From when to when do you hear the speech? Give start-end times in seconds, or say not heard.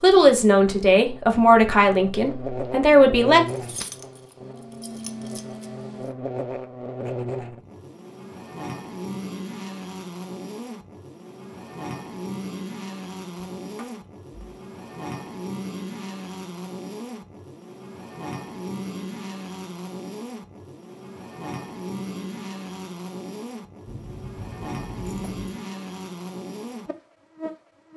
0.0-3.4.